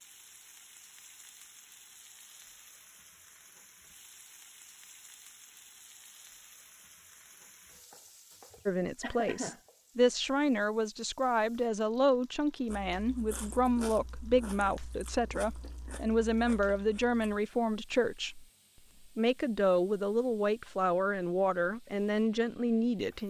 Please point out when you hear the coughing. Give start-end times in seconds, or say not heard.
8.6-9.6.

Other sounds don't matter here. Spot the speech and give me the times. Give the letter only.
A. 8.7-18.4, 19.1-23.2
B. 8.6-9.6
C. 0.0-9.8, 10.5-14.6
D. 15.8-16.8
A.